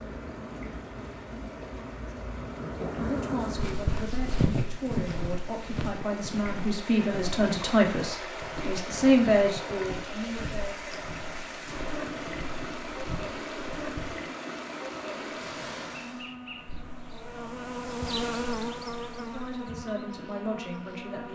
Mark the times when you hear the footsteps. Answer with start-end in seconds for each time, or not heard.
3.5-14.2.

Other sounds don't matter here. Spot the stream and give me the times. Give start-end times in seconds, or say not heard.
0.0-16.4.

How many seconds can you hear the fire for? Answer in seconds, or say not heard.
not heard.